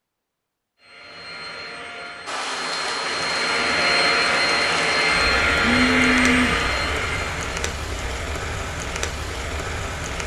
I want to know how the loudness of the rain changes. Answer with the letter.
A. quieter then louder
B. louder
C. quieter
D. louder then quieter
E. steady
E.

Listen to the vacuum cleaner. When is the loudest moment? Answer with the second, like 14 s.
6 s.